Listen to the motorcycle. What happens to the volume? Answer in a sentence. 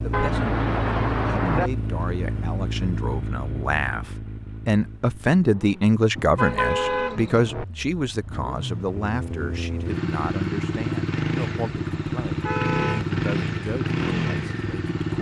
The loudness of the motorcycle goes down, then up.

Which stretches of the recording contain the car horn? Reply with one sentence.
You can hear the car horn from 0.1 to 1.7 s, from 6.2 to 7.7 s and from 12.4 to 13.1 s.